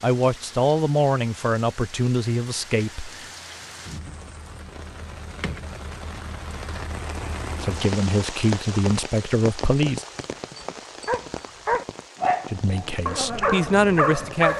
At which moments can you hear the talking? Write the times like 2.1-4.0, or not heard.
0.0-3.2, 7.6-10.1, 12.5-14.5.